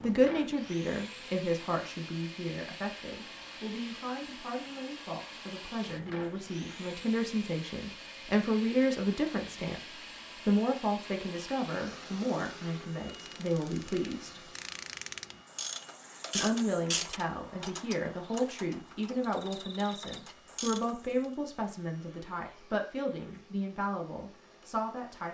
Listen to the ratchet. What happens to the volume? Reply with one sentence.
The loudness of the ratchet goes up, then down.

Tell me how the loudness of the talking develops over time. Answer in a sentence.
The volume of the talking stays about the same.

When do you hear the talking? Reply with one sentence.
You can hear the talking from 0.0 to 14.5 s and from 16.4 to 25.2 s.